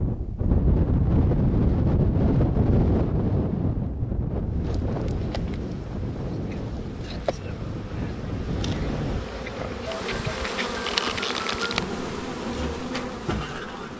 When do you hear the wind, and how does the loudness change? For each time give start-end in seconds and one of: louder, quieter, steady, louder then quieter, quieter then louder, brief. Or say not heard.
0.0-9.2 quieter.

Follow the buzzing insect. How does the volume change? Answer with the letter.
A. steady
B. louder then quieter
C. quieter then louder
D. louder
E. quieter
D.